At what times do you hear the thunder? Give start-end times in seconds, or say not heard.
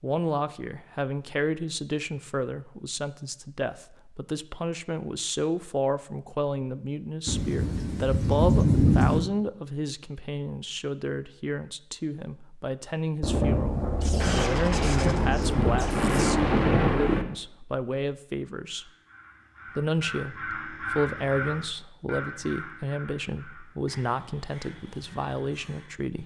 7.2-9.2, 13.2-17.2.